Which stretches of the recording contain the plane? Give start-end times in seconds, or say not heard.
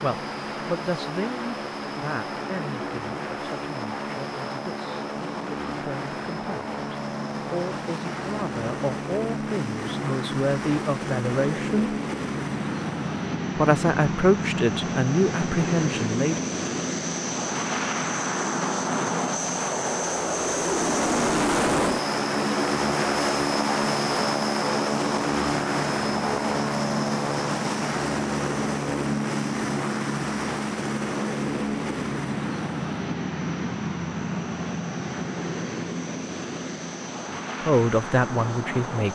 0.0-39.1.